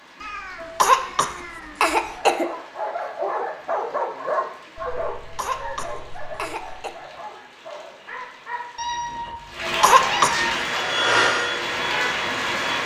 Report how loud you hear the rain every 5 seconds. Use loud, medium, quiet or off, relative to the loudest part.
quiet, medium, loud.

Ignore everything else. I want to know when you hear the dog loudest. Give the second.
4 s.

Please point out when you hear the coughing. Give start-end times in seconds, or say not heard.
0.6-2.5, 5.2-7.0, 9.6-10.4.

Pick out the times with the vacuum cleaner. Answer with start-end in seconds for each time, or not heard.
10.6-12.8.